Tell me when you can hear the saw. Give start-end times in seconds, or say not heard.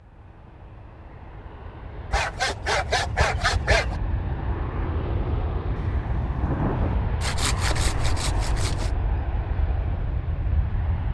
2.1-4.0, 7.2-8.9.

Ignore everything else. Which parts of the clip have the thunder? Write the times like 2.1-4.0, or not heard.
5.8-7.0.